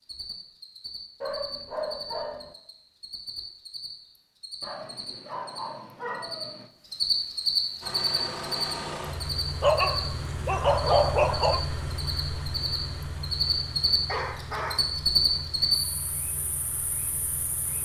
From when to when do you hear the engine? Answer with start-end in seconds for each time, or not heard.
7.8-17.8.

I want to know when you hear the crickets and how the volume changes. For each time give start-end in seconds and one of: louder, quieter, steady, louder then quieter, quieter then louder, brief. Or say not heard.
0.0-17.8 louder.